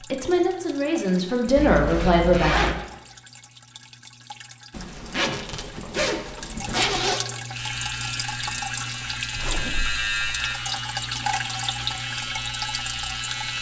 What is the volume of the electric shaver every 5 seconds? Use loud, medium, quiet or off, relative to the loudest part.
off, loud, loud.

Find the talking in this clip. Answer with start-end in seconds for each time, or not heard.
0.1-2.7.